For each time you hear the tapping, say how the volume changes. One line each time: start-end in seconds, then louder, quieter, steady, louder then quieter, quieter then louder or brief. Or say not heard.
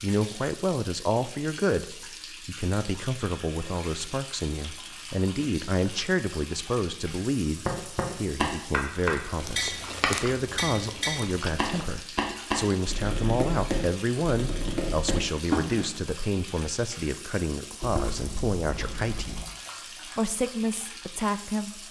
7.7-15.8 quieter.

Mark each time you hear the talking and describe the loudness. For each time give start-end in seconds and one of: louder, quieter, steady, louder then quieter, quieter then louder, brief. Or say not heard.
0.0-19.4 steady
20.1-21.8 brief.